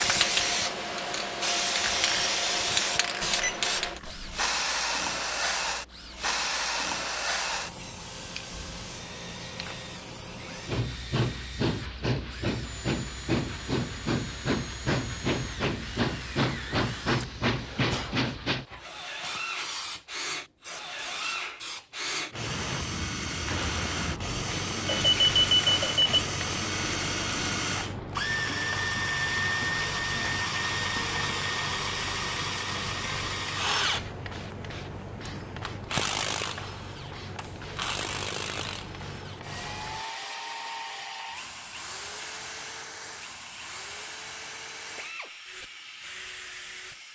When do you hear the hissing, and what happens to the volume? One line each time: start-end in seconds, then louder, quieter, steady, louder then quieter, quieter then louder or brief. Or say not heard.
0.0-47.0 quieter.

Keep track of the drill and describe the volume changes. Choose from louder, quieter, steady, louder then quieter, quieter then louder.
louder then quieter.